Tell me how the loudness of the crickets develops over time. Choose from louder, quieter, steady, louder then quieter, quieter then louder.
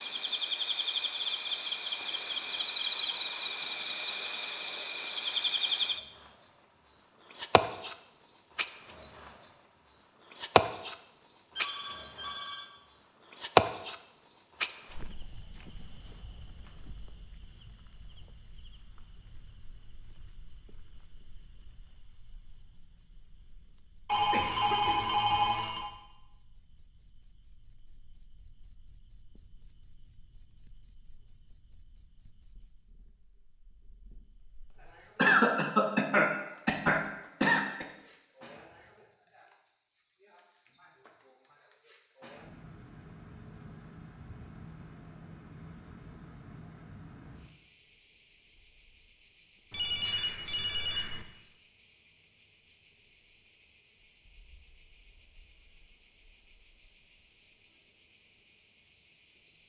quieter.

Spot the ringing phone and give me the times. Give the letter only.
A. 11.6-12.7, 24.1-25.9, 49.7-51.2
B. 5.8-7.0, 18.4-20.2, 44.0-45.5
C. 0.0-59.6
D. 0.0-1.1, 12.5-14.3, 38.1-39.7
A.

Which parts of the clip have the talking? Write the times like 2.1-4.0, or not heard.
not heard.